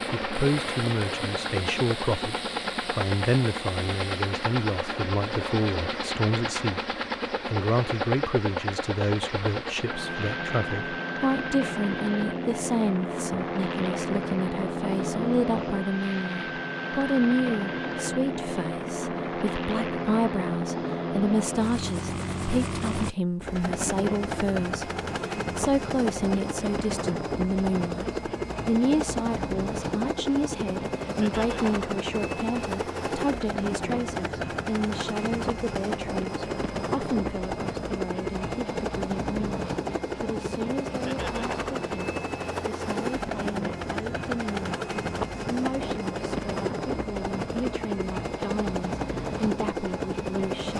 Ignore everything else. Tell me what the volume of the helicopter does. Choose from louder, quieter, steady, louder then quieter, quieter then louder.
steady.